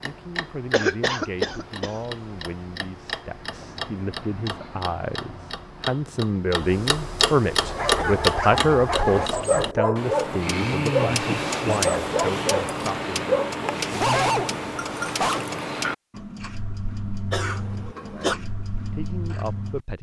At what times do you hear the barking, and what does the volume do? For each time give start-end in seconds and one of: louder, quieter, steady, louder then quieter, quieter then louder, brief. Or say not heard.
7.5-15.4 steady.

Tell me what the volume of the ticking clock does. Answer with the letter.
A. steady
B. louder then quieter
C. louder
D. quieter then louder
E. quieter
B.